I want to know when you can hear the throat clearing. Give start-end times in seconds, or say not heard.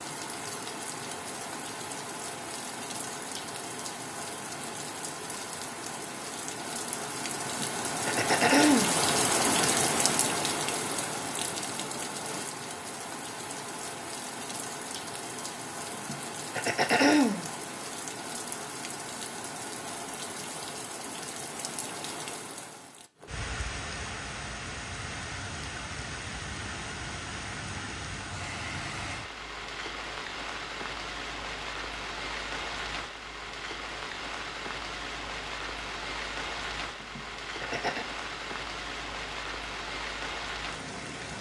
7.5-9.0, 15.9-17.5, 37.0-38.0.